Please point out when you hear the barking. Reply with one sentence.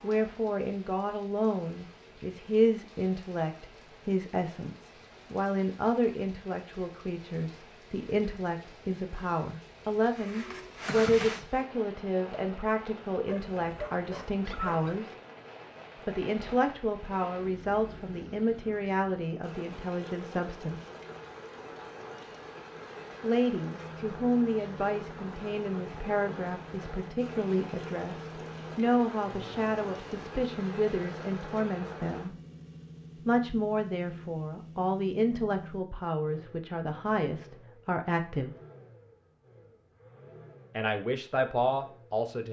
The barking can be heard from 13.2 to 15.0 s.